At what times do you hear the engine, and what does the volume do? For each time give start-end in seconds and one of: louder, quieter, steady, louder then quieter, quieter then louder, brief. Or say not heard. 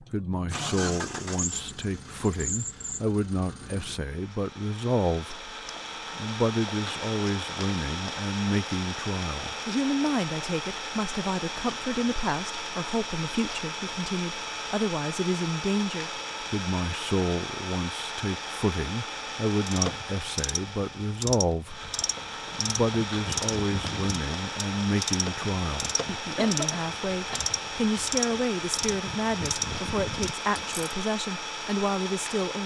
0.0-32.6 steady.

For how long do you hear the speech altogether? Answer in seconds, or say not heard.
31 s.